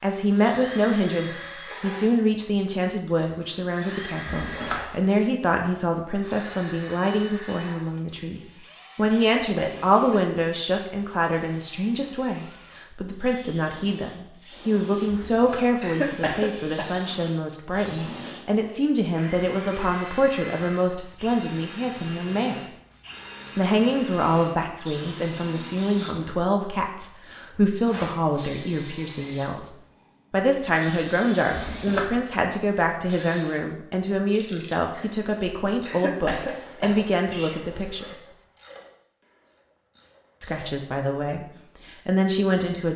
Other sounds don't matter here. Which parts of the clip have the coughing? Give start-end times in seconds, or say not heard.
9.3-10.8, 15.8-16.9, 35.9-37.6.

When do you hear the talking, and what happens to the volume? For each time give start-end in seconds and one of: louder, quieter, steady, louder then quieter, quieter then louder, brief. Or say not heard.
0.0-22.6 steady
23.6-38.2 steady
40.4-42.9 brief.